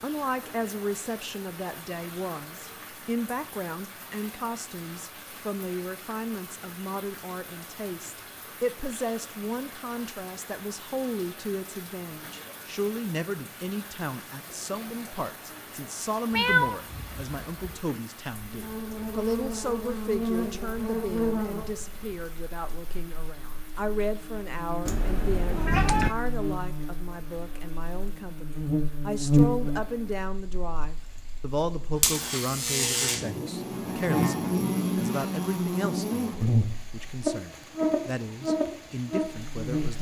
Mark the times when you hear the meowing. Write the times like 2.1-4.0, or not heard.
16.3-17.8, 24.9-26.1.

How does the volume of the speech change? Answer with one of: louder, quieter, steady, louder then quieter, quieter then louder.
steady.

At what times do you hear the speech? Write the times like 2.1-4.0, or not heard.
0.0-39.9.